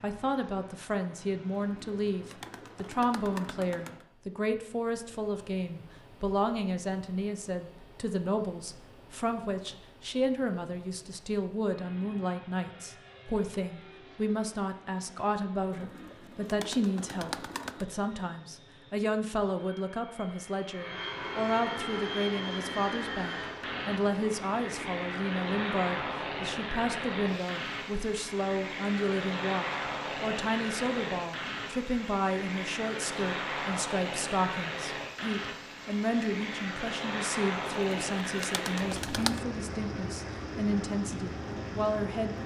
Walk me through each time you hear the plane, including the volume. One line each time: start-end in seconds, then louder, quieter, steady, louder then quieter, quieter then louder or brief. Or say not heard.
0.0-42.4 louder.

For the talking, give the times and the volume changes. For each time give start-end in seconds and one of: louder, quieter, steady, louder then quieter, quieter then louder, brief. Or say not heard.
0.0-42.4 steady.